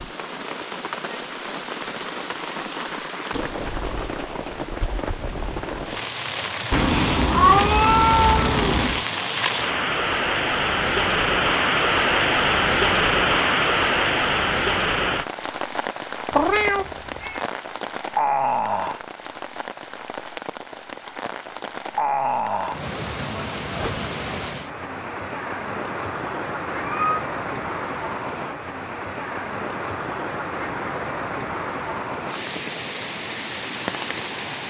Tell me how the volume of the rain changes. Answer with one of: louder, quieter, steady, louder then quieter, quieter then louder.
louder then quieter.